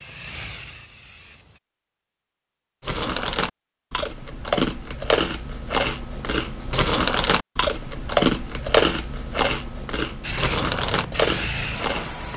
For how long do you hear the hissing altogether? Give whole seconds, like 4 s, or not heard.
4 s.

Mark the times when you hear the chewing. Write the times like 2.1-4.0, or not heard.
2.8-12.3.